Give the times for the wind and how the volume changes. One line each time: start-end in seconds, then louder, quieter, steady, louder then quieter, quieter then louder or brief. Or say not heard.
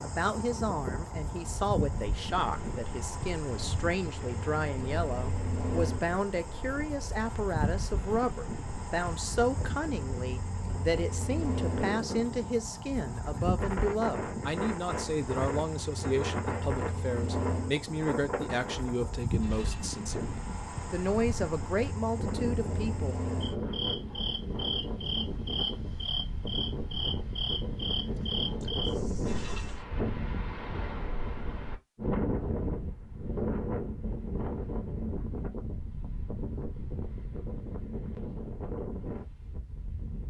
0.0-40.2 louder.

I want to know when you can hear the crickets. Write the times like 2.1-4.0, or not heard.
0.0-29.8.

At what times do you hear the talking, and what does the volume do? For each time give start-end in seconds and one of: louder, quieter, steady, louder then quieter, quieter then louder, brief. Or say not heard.
0.0-23.1 steady.